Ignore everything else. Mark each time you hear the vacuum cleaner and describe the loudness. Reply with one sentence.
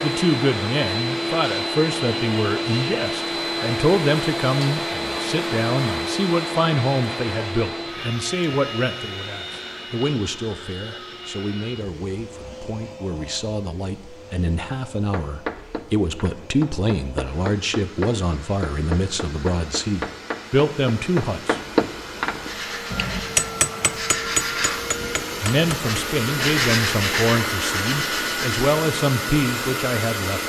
You can hear the vacuum cleaner from 0.0 to 30.4 s, getting quieter then louder.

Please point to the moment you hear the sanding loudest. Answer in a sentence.
The volume of the sanding peaks at 27 seconds.